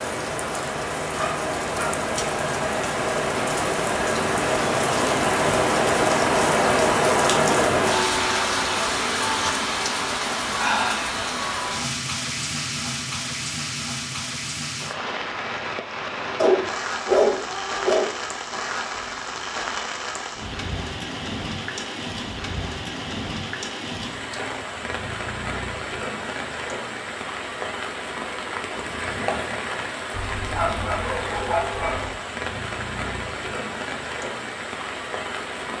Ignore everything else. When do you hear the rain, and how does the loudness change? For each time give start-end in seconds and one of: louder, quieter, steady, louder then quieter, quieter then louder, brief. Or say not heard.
0.0-35.7 quieter.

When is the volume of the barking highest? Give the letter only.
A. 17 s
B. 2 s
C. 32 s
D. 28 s
A.